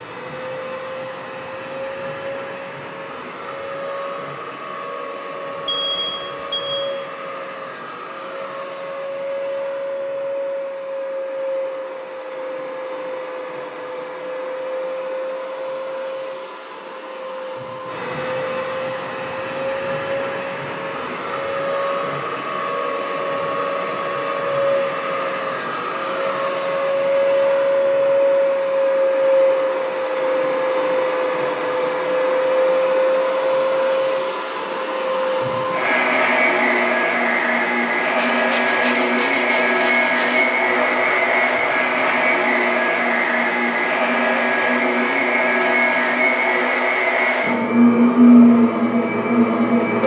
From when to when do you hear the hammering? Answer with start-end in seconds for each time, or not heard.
not heard.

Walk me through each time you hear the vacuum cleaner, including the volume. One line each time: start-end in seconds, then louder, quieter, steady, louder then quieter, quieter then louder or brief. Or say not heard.
0.0-50.0 louder.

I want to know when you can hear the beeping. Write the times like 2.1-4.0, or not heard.
5.7-6.8.